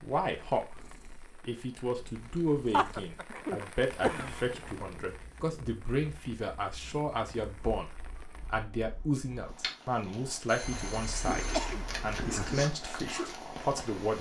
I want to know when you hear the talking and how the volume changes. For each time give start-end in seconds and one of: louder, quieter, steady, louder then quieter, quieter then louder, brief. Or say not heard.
0.0-14.1 steady.